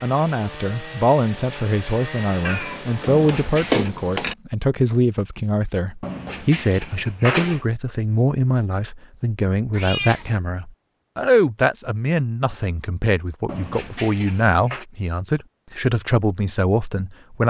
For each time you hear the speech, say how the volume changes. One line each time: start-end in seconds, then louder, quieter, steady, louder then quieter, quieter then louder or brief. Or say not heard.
0.0-17.4 steady.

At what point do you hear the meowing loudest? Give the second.
4 s.